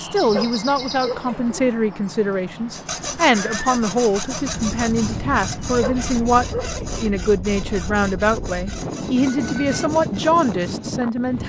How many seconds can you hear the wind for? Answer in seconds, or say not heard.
7 s.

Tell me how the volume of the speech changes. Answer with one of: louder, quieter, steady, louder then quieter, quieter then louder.
steady.